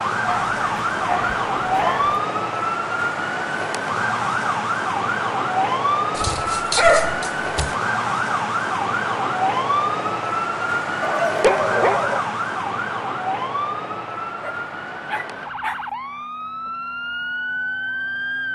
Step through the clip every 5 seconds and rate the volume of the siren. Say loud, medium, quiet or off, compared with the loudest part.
loud, loud, loud, medium.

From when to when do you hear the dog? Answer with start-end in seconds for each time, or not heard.
0.2-2.1, 6.2-7.8, 11.0-12.2, 14.2-15.8.